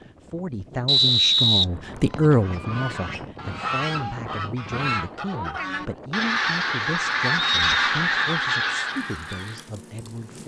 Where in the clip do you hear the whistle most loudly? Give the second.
1 s.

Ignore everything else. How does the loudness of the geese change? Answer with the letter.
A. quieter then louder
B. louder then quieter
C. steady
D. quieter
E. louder
E.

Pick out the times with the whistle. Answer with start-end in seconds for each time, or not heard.
0.8-2.4, 7.3-8.3.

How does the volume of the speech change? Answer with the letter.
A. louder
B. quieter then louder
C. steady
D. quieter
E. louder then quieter
D.